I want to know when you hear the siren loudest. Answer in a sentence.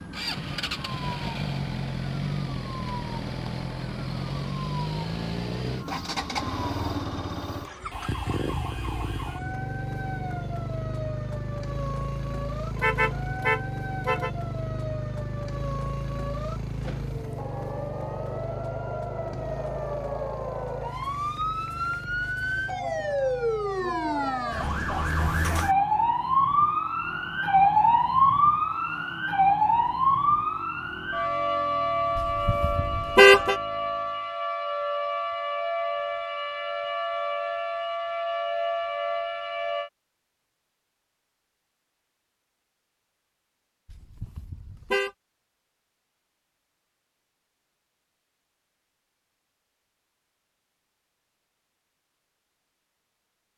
The volume of the siren peaks at 28 seconds.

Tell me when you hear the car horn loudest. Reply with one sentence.
The volume of the car horn peaks at 33 seconds.